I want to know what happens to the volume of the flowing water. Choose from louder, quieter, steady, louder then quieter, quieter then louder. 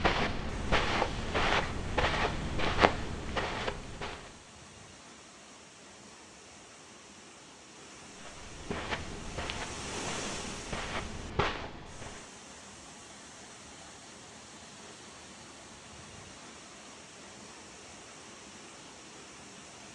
louder then quieter.